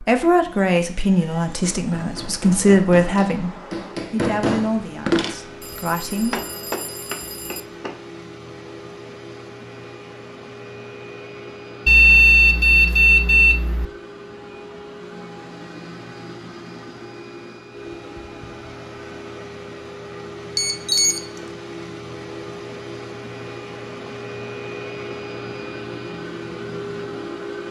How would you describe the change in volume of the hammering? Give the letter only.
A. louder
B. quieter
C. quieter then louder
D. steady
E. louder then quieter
E.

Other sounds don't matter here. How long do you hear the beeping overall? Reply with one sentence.
The beeping can be heard for 5 seconds in total.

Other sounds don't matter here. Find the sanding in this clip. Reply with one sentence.
You can't hear the sanding here.